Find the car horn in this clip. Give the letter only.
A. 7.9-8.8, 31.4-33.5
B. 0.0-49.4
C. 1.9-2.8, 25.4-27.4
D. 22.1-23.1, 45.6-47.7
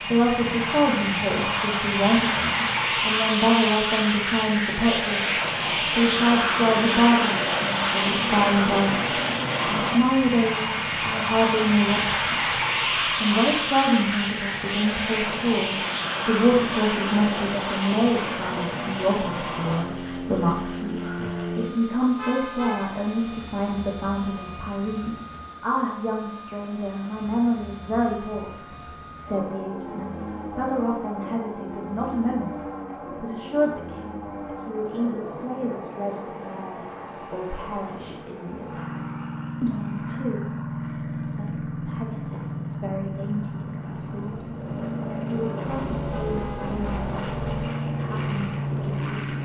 D.